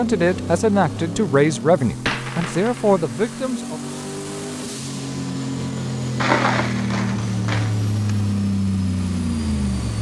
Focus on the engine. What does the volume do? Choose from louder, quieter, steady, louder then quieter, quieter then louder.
louder.